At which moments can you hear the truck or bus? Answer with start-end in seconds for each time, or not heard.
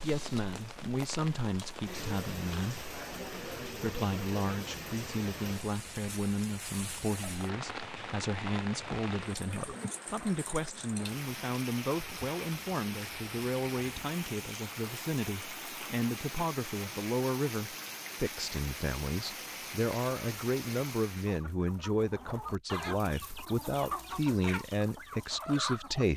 not heard.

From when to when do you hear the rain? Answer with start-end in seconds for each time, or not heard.
0.0-21.4.